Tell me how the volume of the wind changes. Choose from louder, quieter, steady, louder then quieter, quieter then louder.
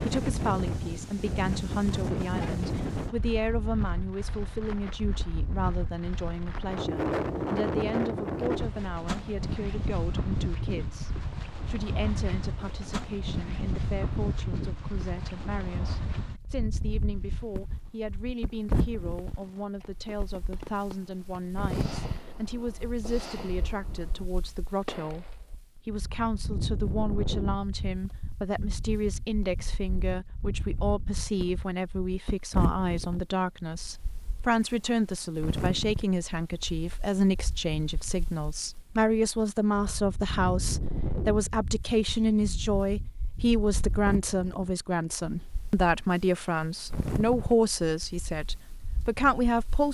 quieter.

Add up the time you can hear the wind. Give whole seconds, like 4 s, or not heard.
50 s.